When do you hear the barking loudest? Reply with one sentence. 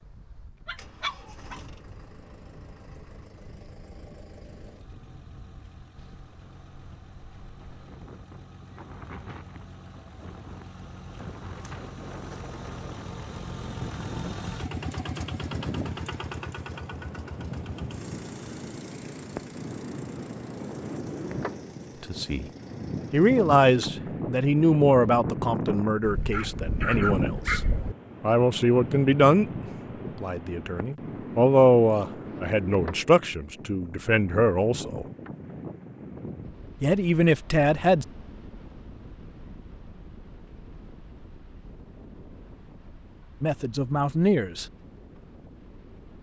The loudest moment of the barking is at 27 seconds.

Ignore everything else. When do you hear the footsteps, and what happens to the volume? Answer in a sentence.
You can't hear the footsteps here.